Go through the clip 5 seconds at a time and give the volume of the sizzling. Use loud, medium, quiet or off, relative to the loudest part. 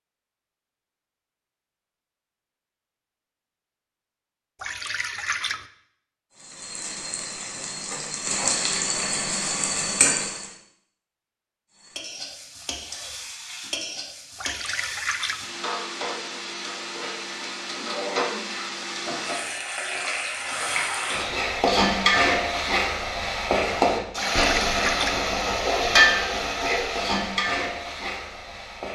off, medium, medium, medium, loud, loud.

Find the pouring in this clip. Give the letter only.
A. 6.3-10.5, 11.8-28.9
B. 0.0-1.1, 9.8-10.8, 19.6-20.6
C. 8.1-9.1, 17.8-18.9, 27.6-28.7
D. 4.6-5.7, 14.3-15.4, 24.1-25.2
D.